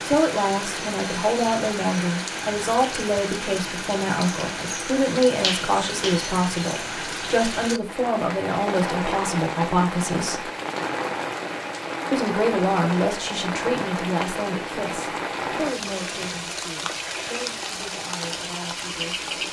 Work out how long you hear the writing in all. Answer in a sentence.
You can't hear the writing here.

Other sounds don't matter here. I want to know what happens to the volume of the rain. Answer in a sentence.
The loudness of the rain stays about the same.